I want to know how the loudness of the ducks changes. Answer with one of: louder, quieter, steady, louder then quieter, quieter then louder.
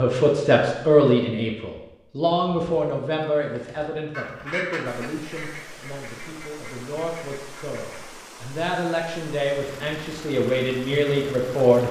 quieter.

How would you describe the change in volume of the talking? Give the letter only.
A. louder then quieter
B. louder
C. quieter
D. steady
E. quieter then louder
E.